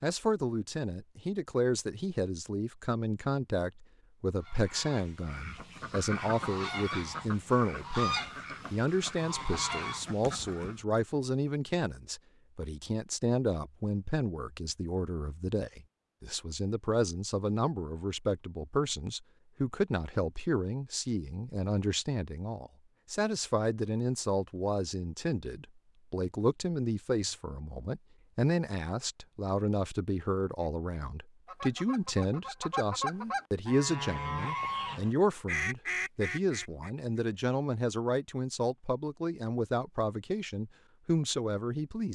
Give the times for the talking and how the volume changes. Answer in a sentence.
You can hear the talking from 0.0 to 42.1 s, at a steady volume.